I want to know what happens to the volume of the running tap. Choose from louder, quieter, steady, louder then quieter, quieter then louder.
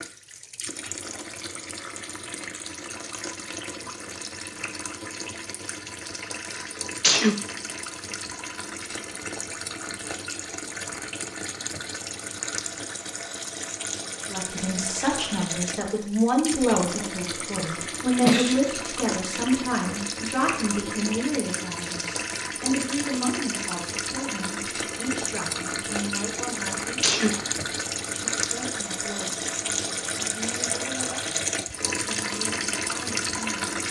louder.